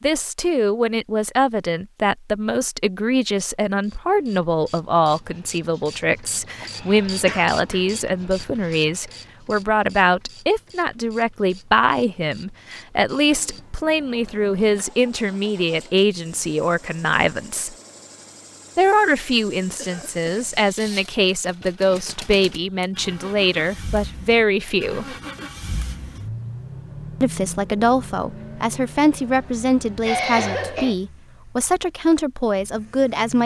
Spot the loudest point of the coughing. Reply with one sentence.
The volume of the coughing peaks at 30 seconds.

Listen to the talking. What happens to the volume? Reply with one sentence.
The loudness of the talking stays about the same.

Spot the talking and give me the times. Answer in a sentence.
You can hear the talking from 0.0 to 17.8 s, from 18.8 to 25.1 s and from 27.2 to 33.4 s.